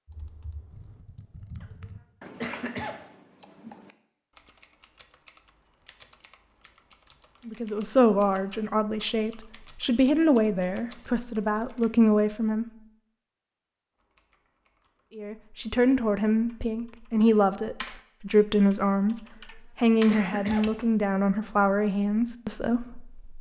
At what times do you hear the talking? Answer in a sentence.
You can hear the talking from 7.5 to 12.7 s and from 15.2 to 23.3 s.